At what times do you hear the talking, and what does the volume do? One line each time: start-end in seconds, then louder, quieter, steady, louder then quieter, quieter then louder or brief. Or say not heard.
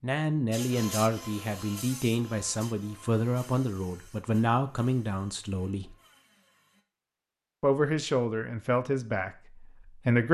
0.0-6.0 steady
7.6-10.2 brief.